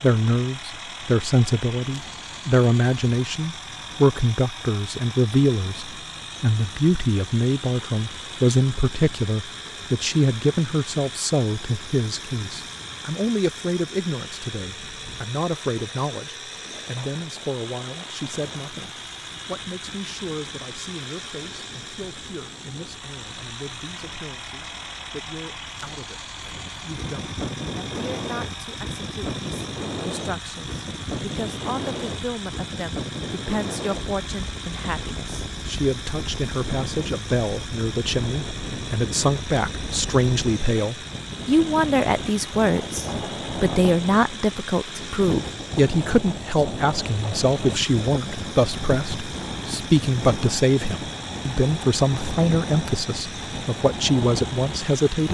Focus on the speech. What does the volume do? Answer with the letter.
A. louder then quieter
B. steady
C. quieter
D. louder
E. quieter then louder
E.